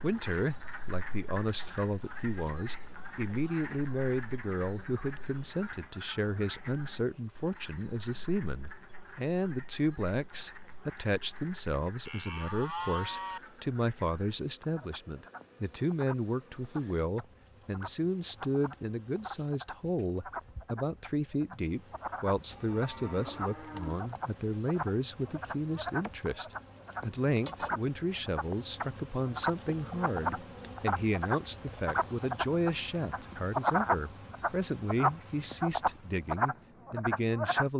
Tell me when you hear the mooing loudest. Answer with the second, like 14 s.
13 s.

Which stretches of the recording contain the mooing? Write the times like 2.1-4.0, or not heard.
12.1-13.4, 22.5-24.1.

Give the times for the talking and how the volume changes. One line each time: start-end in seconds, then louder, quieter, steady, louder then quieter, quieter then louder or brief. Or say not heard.
0.0-37.7 steady.